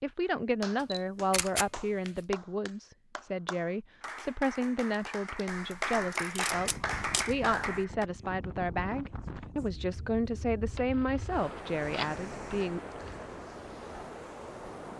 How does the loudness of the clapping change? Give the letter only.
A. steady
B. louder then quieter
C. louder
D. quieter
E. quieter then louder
C.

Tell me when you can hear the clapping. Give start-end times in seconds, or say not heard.
0.2-8.1.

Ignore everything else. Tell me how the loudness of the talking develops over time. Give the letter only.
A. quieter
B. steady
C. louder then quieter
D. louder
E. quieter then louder
B.